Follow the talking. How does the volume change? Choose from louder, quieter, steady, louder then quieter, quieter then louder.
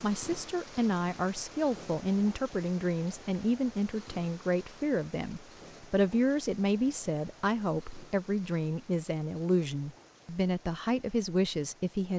steady.